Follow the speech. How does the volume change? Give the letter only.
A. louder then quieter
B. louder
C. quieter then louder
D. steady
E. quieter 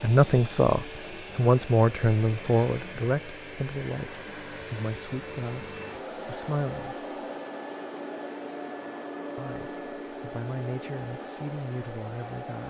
E.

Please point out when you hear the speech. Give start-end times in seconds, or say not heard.
0.0-7.0, 9.3-12.6.